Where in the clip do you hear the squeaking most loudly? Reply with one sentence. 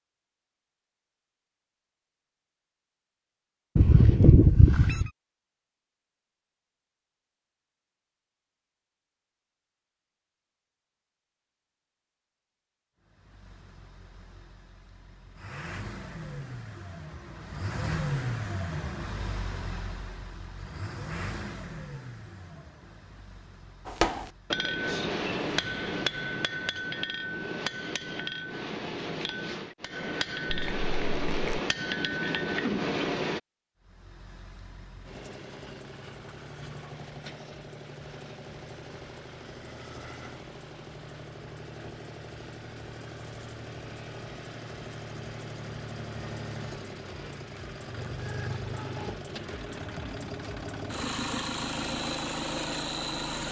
The loudest moment of the squeaking is at 4 seconds.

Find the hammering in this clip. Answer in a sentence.
You can hear the hammering from 23.9 to 33.4 s.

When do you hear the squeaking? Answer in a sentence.
The squeaking can be heard from 3.8 to 5.1 s and from 30.5 to 31.6 s.